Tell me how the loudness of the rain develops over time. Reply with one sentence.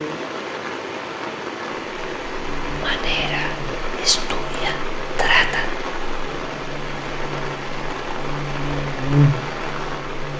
The volume of the rain stays about the same.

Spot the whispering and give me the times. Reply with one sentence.
The whispering can be heard from 2.8 to 5.7 s.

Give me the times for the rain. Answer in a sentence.
You can hear the rain from 0.0 to 10.3 s.